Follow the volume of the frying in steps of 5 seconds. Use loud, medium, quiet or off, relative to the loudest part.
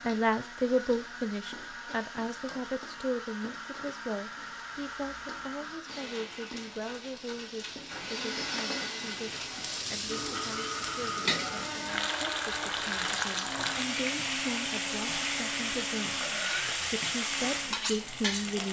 quiet, medium, loud, loud.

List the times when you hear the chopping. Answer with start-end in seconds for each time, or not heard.
not heard.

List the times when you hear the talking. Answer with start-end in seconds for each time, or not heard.
0.0-9.3, 9.9-16.2, 16.9-18.6.